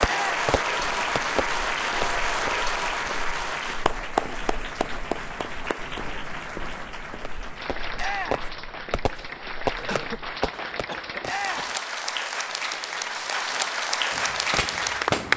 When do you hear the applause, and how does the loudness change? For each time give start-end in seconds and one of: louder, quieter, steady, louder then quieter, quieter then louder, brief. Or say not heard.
0.0-15.3 quieter then louder.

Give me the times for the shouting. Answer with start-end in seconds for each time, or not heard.
0.0-0.4, 8.0-8.5, 11.2-11.8.